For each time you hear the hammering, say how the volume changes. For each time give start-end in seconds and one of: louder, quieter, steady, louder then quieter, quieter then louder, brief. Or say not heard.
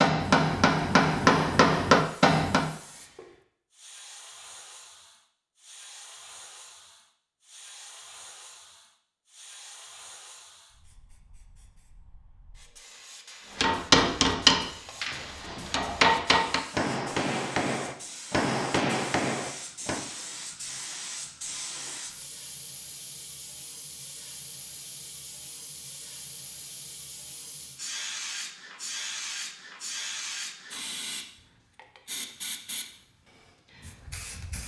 0.0-2.7 brief
13.6-20.1 quieter.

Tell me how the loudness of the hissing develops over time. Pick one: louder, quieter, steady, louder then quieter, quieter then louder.
louder.